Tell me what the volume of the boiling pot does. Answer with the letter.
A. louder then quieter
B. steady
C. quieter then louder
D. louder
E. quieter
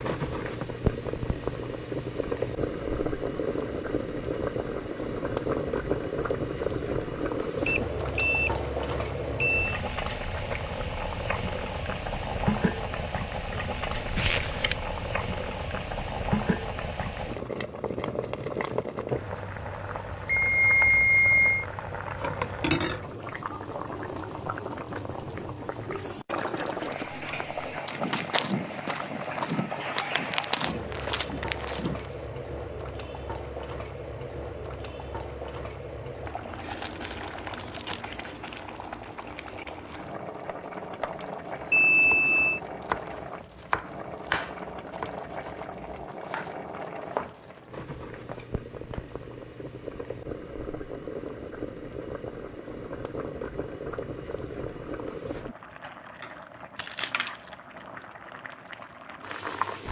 E.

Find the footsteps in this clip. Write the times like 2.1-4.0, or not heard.
26.9-32.2.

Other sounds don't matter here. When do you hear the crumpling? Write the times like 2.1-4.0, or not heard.
13.9-14.8, 36.5-38.0, 56.8-57.5.